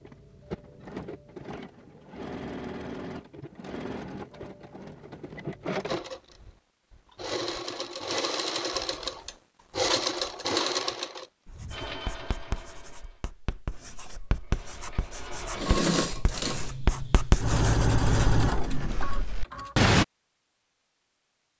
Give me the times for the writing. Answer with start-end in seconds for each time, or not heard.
11.4-20.1.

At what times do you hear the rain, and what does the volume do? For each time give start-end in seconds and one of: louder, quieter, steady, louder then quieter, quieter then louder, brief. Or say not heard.
not heard.